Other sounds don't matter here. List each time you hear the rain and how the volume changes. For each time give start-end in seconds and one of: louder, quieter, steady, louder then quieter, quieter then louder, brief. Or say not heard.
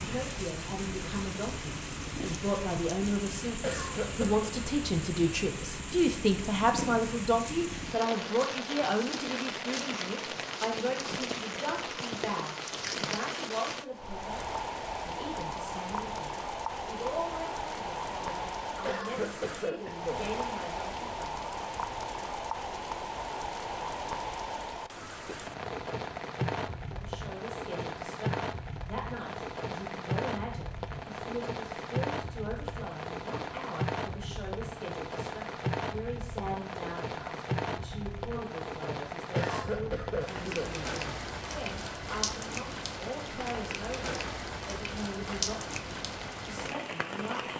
0.0-47.5 steady.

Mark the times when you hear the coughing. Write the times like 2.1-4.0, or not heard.
3.6-4.5, 18.9-20.3, 39.4-40.8.